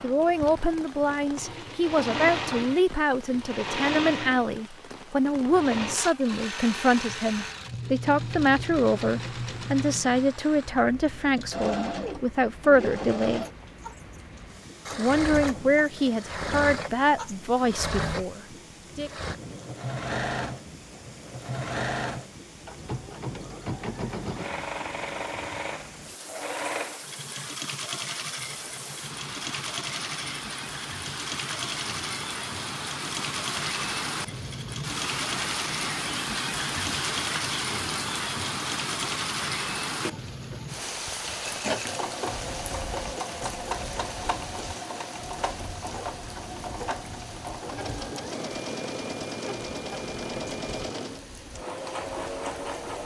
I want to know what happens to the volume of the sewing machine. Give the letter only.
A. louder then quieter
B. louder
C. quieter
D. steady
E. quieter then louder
D.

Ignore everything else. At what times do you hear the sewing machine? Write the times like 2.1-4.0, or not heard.
0.0-53.0.